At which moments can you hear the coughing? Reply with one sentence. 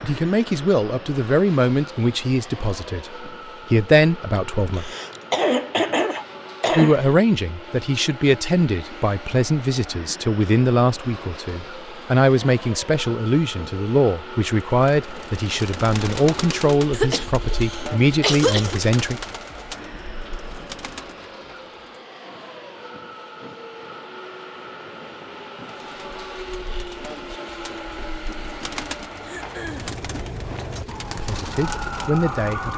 The coughing can be heard from 4.7 to 7.1 s, from 16.9 to 18.8 s and from 29.2 to 29.9 s.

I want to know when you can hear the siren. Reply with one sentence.
The siren can be heard from 29.2 to 32.7 s.